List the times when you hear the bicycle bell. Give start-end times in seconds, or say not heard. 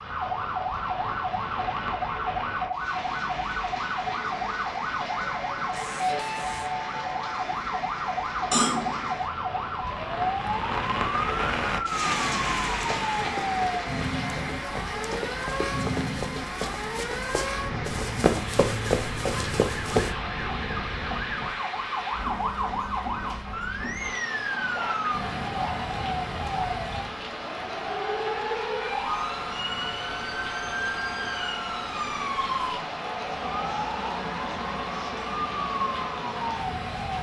not heard.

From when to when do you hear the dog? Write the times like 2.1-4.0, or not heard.
24.5-26.8.